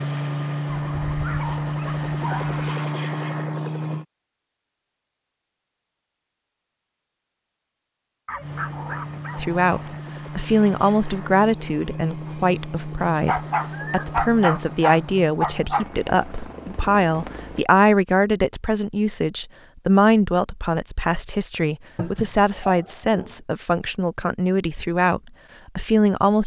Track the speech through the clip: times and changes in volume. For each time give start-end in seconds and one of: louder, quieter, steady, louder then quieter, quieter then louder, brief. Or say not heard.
9.3-26.4 steady.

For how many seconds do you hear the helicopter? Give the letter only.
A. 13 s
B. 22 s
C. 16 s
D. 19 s
A.